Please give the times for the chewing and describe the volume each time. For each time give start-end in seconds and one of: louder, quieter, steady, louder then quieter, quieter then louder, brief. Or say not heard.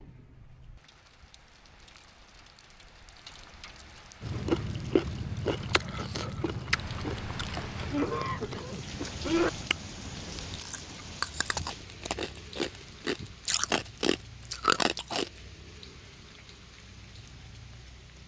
4.2-15.3 quieter then louder.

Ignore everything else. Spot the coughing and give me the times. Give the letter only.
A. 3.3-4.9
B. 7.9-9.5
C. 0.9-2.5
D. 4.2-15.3
B.